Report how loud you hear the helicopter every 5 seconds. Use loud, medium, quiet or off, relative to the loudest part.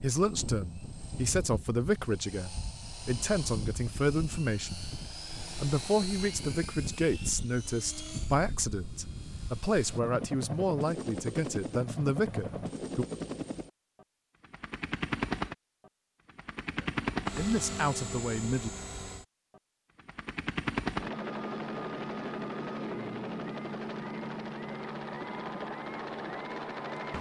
medium, medium, loud, loud, loud, loud.